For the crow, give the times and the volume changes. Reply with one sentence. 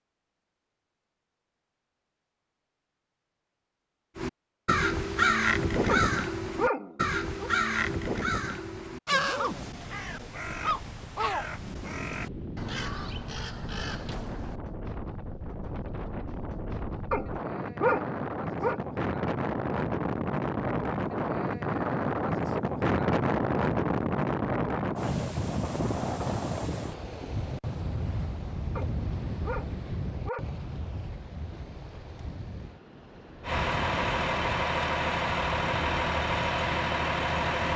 The crow can be heard from 4.2 to 14.6 s, getting quieter.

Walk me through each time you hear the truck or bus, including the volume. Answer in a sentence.
You can hear the truck or bus from 33.4 to 37.7 s, at a steady volume.